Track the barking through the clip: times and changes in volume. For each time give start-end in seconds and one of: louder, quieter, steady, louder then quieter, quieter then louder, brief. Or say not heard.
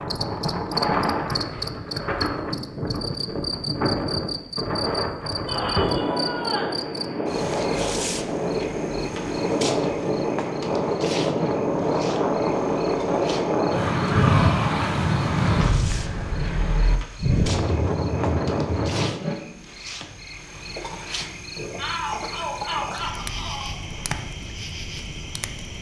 not heard.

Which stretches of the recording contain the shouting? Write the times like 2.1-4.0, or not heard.
5.5-6.8, 14.0-14.9, 21.8-23.8.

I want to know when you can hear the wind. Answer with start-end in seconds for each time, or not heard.
0.0-19.1.